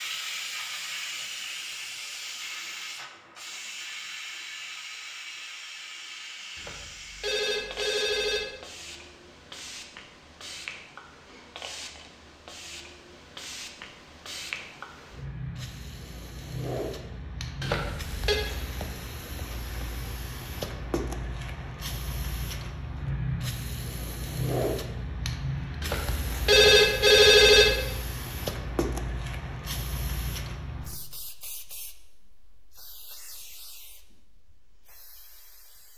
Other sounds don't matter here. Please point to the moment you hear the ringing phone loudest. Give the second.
27 s.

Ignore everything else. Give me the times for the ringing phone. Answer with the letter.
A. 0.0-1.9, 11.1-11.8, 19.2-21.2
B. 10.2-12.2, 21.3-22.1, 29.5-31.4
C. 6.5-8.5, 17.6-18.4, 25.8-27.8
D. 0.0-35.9
C.